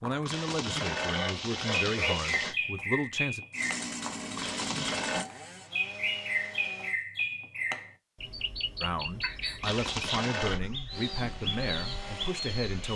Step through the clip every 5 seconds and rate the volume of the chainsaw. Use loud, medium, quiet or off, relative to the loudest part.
loud, medium, medium.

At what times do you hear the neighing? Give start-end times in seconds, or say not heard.
0.2-2.5, 4.3-5.2, 9.6-10.6.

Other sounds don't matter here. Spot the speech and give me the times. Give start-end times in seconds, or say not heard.
0.0-3.5, 8.8-12.9.